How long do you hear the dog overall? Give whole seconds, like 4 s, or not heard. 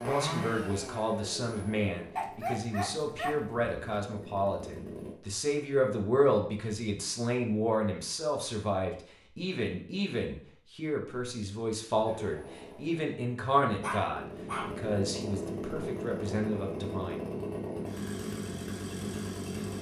3 s.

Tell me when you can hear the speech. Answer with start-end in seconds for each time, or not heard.
0.1-17.2.